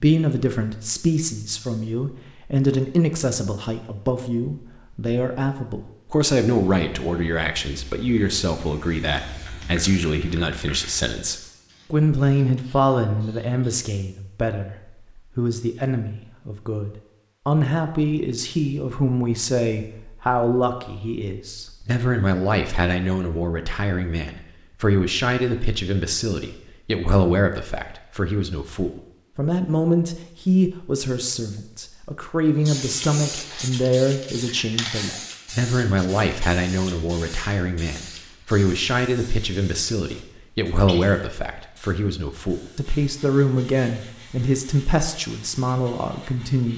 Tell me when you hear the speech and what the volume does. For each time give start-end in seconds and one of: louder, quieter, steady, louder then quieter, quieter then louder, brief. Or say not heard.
0.0-46.7 steady.